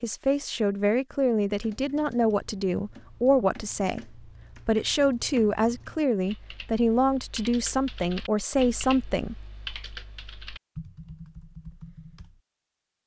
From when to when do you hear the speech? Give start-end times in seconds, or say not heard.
0.0-9.4.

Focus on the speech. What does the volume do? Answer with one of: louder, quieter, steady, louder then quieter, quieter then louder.
steady.